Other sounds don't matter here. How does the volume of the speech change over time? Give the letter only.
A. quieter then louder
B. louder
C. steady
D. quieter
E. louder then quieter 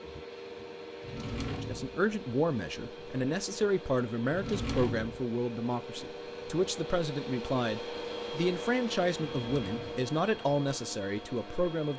C.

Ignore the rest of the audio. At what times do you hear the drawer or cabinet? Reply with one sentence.
The drawer or cabinet can be heard from 1.0 to 1.9 s, from 4.3 to 5.2 s and from 9.3 to 10.1 s.